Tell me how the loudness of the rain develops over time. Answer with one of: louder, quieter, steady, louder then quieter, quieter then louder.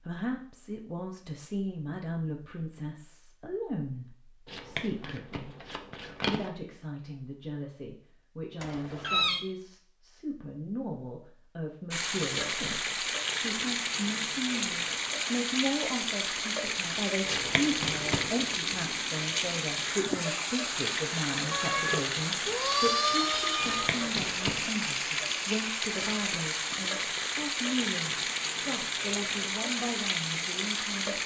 steady.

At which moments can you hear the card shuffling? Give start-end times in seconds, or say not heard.
4.5-6.5, 17.2-18.6, 23.6-24.6.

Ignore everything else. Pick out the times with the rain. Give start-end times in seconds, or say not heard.
11.9-31.2.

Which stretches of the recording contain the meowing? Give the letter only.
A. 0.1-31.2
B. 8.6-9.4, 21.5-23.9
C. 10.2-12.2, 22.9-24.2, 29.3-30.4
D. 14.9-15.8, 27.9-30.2
B.